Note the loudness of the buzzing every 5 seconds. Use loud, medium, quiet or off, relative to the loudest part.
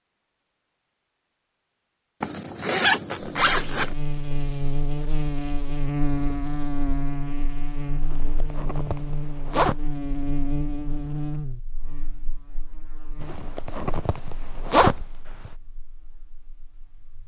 loud, loud, loud, quiet.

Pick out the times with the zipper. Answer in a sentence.
You can hear the zipper from 2.2 to 4.0 s, from 8.0 to 9.8 s and from 13.2 to 15.5 s.